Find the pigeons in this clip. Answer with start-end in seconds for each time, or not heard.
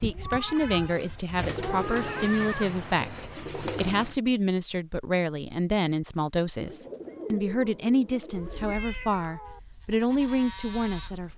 1.4-4.2, 6.5-8.8.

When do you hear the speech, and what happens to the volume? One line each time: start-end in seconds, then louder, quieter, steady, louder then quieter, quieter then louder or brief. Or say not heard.
0.0-11.3 steady.